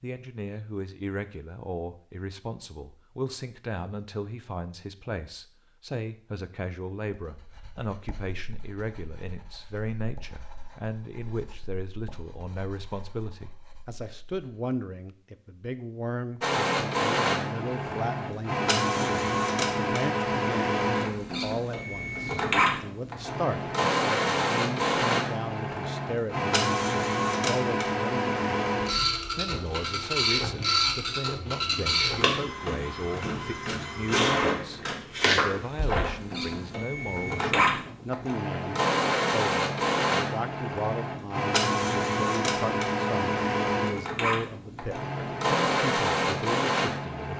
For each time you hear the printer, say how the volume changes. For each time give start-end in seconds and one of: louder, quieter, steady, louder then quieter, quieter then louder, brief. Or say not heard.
16.4-47.3 steady.